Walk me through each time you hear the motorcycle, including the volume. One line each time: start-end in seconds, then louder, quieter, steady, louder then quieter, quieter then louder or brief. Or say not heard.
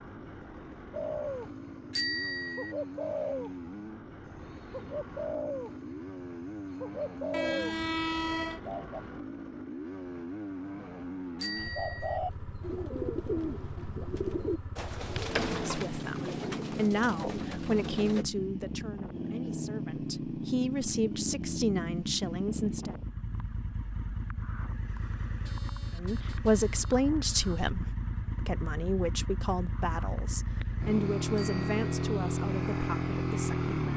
0.0-33.9 louder.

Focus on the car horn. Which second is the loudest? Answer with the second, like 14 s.
8 s.